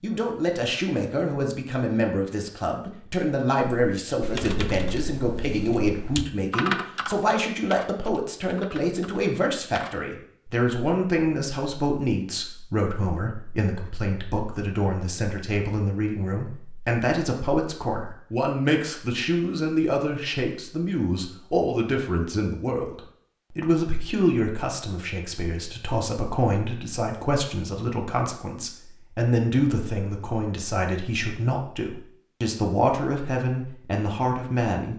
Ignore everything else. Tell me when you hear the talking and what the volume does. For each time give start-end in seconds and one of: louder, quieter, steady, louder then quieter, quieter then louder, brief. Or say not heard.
0.0-34.9 steady.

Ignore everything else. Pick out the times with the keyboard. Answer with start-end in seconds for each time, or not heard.
3.6-9.9.